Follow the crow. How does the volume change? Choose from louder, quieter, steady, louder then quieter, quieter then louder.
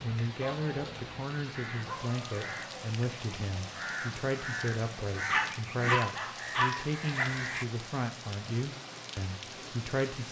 louder then quieter.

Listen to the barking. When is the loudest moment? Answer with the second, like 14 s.
6 s.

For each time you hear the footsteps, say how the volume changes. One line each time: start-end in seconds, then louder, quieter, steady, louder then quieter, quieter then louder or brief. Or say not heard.
not heard.